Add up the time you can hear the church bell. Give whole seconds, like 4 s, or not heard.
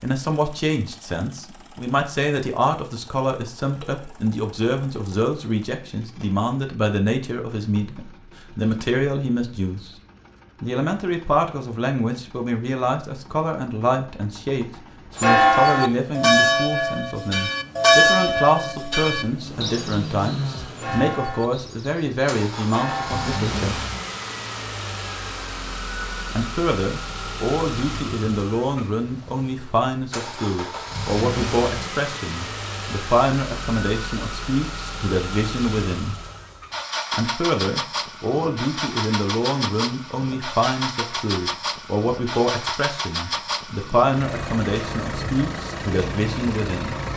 8 s.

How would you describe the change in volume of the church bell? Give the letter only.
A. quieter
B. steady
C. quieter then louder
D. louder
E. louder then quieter
A.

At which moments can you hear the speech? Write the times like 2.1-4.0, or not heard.
0.0-9.9, 10.6-23.8, 26.3-36.1, 37.1-47.0.